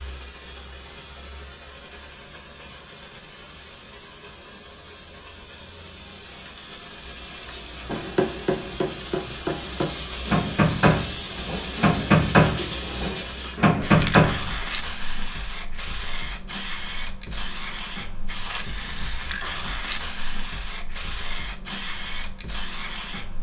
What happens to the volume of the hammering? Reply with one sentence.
The loudness of the hammering goes up.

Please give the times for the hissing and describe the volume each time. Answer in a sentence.
The hissing can be heard from 0.0 to 23.3 s, getting louder.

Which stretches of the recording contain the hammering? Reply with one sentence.
The hammering can be heard from 7.8 to 14.5 s.